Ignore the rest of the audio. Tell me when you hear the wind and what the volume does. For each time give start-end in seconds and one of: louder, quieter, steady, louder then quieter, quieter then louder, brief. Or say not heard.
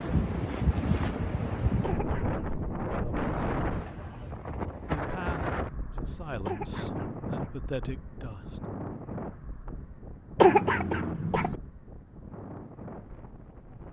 0.0-13.8 quieter.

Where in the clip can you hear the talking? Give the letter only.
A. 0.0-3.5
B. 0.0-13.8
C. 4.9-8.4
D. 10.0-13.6
C.